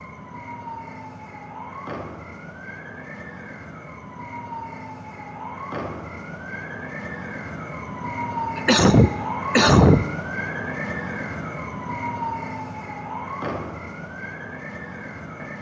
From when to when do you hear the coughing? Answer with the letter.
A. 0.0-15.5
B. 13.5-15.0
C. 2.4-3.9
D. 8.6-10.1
D.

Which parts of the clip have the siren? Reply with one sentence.
The siren can be heard from 0.0 to 15.5 s.